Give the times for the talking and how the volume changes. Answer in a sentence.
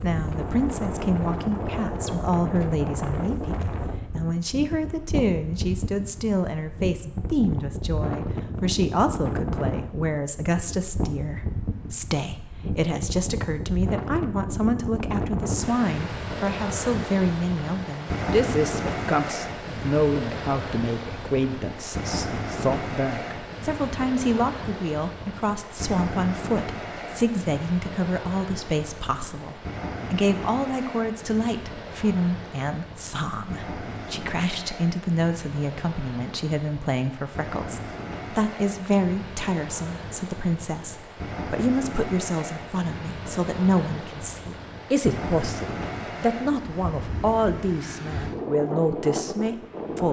The talking can be heard from 0.0 to 50.0 s, at a steady volume.